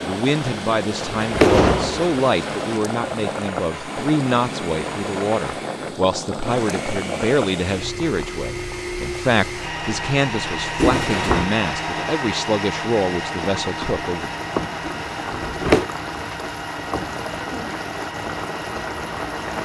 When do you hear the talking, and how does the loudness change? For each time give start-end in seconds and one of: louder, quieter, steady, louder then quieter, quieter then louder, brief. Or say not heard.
0.0-14.3 steady.